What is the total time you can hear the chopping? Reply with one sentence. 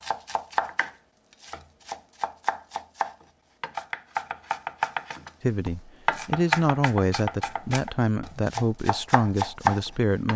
The chopping can be heard for 10 seconds in total.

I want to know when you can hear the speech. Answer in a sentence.
The speech can be heard from 5.4 to 10.3 s.